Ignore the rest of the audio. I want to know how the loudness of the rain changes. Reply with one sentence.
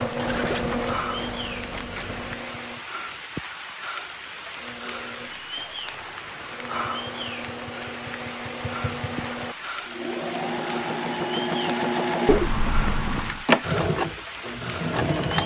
The loudness of the rain stays about the same.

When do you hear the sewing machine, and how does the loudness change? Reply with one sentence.
The sewing machine can be heard briefly from 0.0 to 2.9 s; and from 4.5 to 15.4 s, getting louder.